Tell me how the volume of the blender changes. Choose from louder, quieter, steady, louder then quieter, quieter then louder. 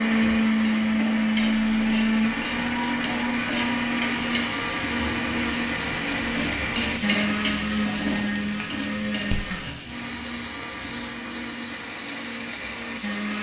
quieter.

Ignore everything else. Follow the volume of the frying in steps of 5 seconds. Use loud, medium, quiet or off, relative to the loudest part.
loud, loud, medium.